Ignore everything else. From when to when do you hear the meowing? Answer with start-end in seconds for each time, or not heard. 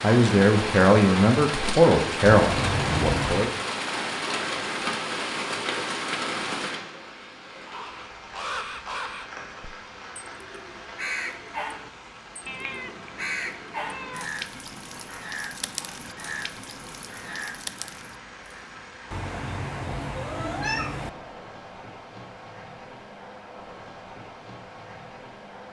2.3-3.5, 12.4-14.3, 19.1-21.1.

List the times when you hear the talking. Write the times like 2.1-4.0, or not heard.
0.0-3.5.